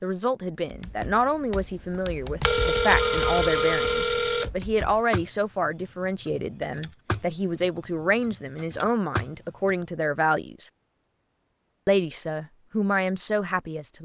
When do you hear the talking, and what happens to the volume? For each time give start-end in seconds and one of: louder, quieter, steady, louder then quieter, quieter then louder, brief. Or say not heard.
0.0-10.7 steady
11.8-13.9 brief.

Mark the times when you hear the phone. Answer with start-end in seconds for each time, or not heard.
2.4-4.5.